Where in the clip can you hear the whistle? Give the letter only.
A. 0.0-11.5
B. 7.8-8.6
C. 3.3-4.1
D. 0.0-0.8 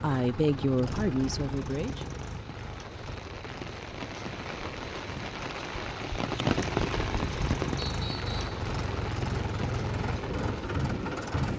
B.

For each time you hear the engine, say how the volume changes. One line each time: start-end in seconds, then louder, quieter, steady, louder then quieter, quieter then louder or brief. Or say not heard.
0.0-11.5 quieter then louder.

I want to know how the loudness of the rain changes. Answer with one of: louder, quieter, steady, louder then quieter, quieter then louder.
louder then quieter.